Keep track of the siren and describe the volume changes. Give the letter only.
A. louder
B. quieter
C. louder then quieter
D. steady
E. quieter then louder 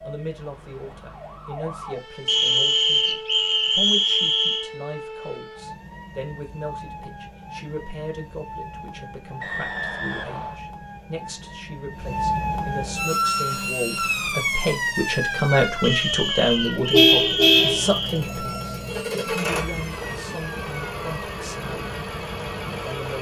C.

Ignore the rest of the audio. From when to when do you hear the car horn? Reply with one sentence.
You can hear the car horn from 16.9 to 17.9 s.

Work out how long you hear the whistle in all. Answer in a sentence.
You can hear the whistle for 6 seconds altogether.